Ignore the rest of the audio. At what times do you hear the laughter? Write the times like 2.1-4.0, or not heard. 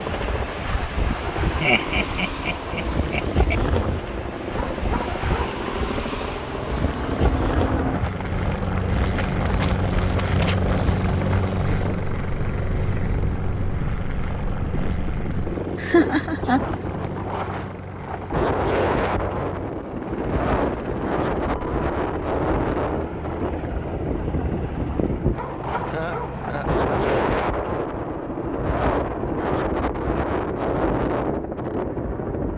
1.6-3.5, 15.8-16.6, 25.9-26.8.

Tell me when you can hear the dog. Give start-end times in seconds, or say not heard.
4.5-5.6, 25.4-26.4.